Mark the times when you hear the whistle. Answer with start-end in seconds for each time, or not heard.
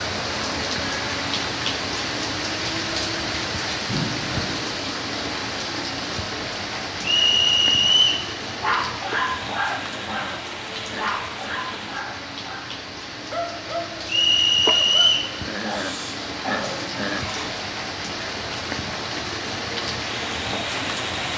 7.0-8.2, 14.1-15.3.